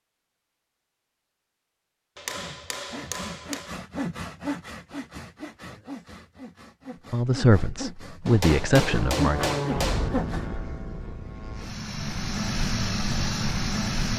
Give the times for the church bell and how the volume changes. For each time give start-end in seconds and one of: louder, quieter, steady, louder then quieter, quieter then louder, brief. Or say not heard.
not heard.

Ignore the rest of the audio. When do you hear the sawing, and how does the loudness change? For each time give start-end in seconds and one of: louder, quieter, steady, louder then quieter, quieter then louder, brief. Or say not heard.
2.3-10.5 quieter then louder.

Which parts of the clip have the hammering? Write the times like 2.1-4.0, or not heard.
2.1-3.7, 8.2-10.1.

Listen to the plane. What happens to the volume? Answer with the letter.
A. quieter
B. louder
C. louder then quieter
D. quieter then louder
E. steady
D.